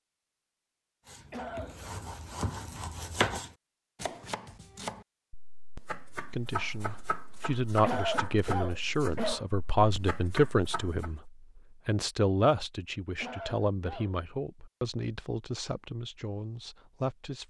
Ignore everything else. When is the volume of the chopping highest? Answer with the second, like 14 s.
3 s.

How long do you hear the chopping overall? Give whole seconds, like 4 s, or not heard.
10 s.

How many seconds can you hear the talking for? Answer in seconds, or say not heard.
11 s.